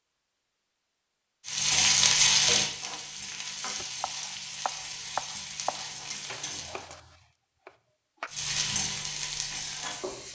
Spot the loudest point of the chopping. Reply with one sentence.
The loudest moment of the chopping is at 5 seconds.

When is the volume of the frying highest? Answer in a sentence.
The volume of the frying peaks at 2 seconds.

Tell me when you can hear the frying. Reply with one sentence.
You can hear the frying from 1.4 to 6.8 s and from 8.3 to 10.3 s.